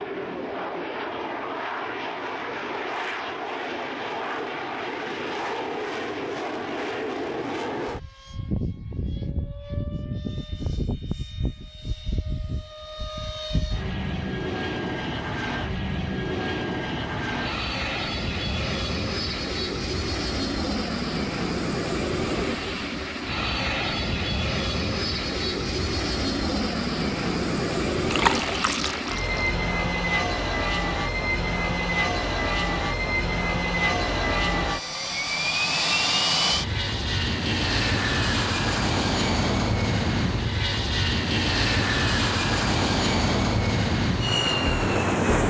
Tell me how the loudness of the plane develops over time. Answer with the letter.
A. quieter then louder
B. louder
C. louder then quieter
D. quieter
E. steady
B.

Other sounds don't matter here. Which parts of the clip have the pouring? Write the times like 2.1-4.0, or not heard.
28.1-29.6.